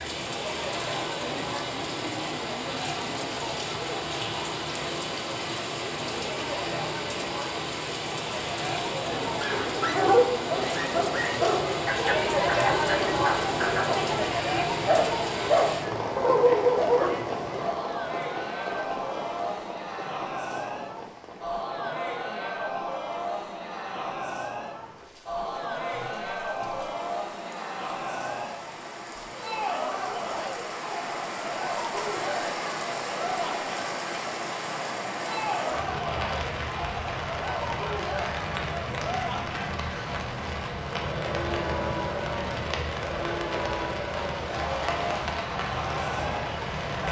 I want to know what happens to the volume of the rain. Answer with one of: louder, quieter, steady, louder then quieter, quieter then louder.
quieter then louder.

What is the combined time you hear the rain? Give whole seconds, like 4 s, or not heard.
47 s.